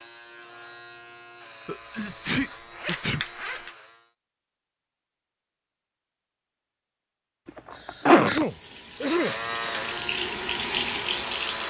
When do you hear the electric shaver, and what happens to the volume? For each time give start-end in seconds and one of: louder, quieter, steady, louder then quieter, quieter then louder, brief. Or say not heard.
0.0-4.1 steady
9.0-11.6 brief.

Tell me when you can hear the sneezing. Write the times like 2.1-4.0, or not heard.
1.6-3.2, 7.8-9.3.